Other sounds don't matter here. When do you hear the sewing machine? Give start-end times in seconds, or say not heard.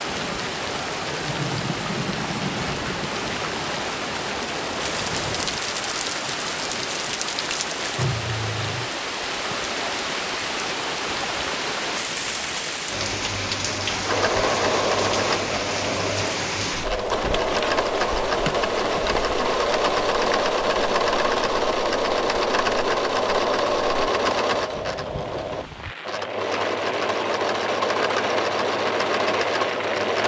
14.1-30.2.